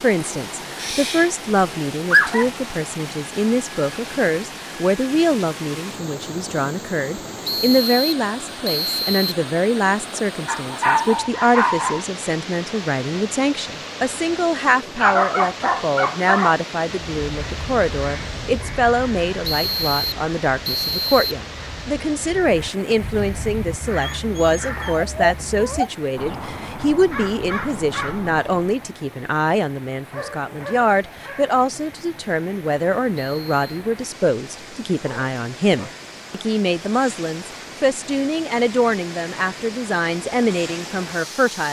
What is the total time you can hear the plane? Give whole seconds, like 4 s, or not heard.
not heard.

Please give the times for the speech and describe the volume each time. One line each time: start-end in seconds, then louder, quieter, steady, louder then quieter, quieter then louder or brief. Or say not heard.
0.0-41.6 steady.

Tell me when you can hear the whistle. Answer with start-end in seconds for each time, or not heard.
7.5-9.3, 19.4-21.4, 33.1-33.6.